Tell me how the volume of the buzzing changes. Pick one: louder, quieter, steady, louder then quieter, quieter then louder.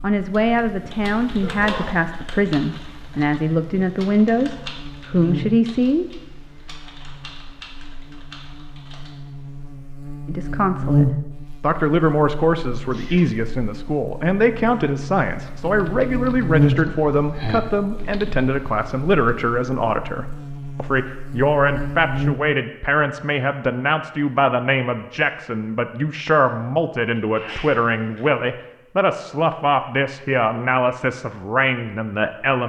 louder then quieter.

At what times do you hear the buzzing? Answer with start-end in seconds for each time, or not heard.
0.0-22.4.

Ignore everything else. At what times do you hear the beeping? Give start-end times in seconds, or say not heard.
not heard.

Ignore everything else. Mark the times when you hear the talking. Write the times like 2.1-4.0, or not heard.
0.0-6.0, 10.2-32.6.